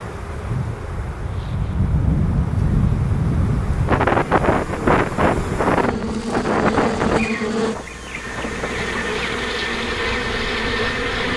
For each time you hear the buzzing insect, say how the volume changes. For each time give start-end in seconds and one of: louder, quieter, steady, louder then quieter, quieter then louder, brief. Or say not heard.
0.0-11.3 louder.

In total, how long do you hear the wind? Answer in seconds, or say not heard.
11 s.